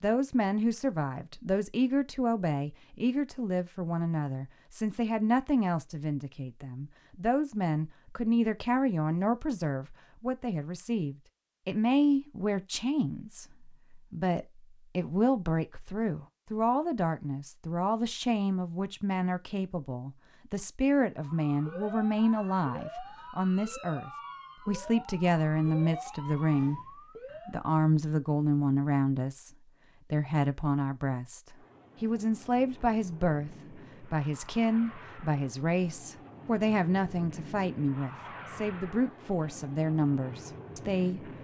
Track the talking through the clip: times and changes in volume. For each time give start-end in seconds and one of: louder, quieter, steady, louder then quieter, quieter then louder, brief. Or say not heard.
0.0-26.8 steady
27.4-29.5 brief
30.1-41.3 steady.